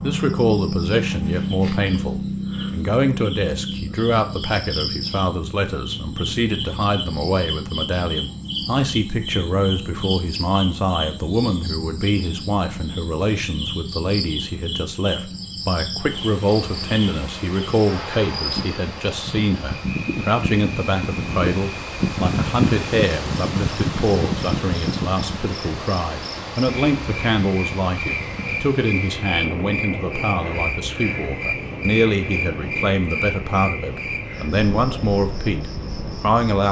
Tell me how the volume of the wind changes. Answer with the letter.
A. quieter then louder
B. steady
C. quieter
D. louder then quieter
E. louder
D.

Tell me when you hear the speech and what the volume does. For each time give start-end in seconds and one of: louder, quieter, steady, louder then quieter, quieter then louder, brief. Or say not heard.
0.0-36.6 steady.